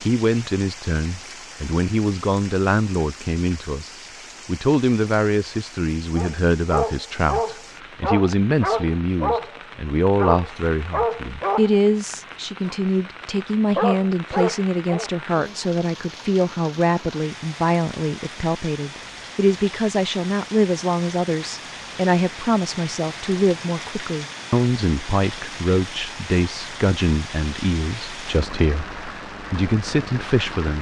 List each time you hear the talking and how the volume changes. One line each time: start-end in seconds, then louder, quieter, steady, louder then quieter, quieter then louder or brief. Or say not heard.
0.0-30.7 steady.